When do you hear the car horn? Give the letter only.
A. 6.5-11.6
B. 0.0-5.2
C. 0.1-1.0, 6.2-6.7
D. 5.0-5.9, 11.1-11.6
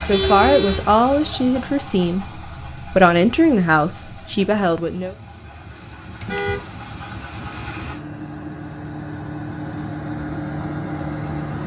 C.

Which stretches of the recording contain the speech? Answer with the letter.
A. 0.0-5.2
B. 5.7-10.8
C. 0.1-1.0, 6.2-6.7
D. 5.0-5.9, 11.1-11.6
A.